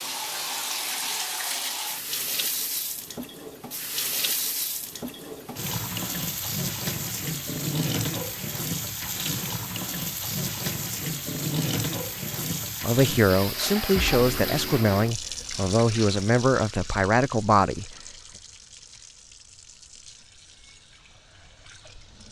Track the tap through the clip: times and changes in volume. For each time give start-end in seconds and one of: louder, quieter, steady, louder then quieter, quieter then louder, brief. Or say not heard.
0.0-22.2 quieter.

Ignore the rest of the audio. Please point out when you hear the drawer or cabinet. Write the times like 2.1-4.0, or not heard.
not heard.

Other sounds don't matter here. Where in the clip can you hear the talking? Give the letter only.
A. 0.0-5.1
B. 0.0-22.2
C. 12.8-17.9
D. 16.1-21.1
C.